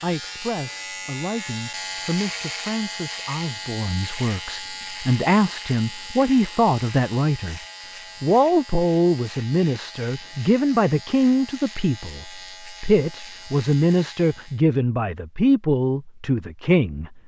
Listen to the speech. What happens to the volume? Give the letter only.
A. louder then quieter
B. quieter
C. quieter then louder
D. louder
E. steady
D.